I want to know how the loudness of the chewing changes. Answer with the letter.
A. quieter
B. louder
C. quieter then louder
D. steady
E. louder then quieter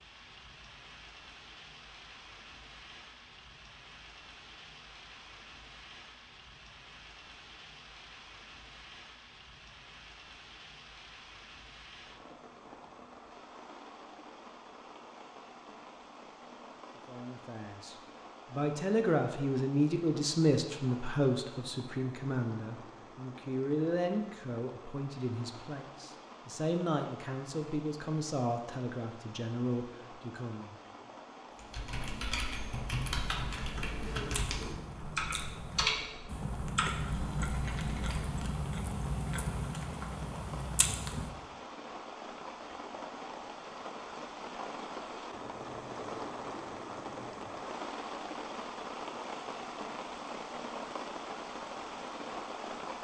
B.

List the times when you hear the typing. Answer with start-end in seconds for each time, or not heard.
31.6-38.5.